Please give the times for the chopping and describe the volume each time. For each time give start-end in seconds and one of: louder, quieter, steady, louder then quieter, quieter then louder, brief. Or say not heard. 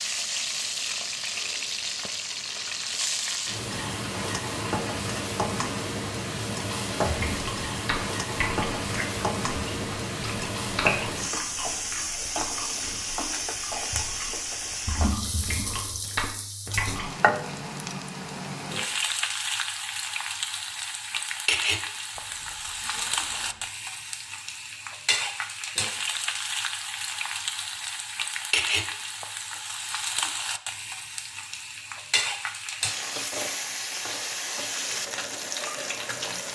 not heard.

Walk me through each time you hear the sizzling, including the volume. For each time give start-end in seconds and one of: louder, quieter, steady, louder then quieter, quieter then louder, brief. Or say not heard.
0.0-36.5 steady.